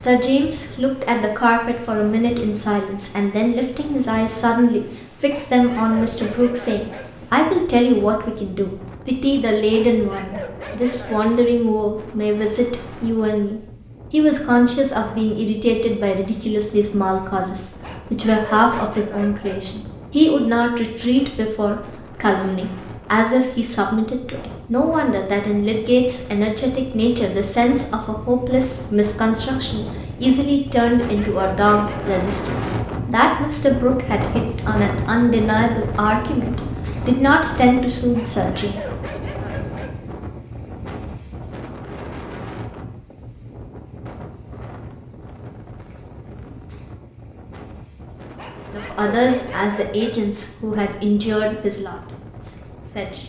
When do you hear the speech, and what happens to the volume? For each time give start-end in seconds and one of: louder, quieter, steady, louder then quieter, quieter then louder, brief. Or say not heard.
0.0-38.9 steady
48.7-53.2 quieter.